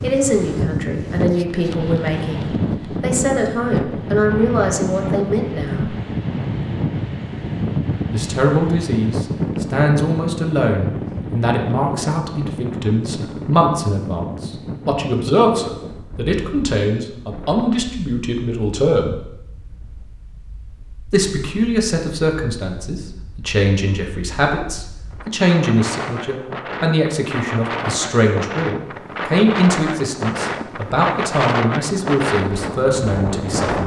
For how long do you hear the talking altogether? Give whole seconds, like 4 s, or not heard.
30 s.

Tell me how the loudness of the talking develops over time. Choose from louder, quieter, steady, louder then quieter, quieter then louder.
steady.